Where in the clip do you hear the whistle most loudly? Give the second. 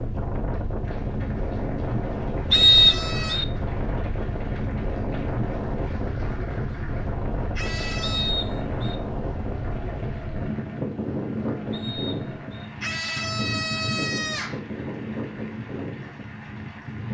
3 s.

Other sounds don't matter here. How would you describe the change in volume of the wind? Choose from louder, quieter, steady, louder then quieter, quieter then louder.
steady.